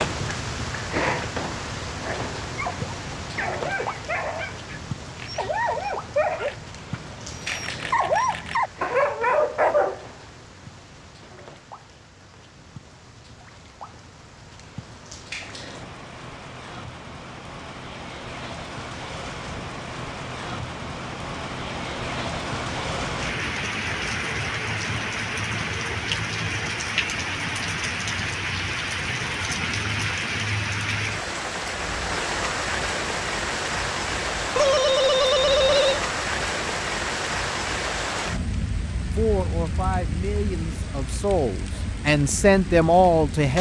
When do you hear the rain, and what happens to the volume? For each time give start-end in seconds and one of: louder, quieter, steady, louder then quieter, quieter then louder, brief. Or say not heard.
0.0-43.5 quieter then louder.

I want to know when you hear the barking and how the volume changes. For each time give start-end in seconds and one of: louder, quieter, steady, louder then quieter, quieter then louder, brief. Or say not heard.
2.0-10.1 louder.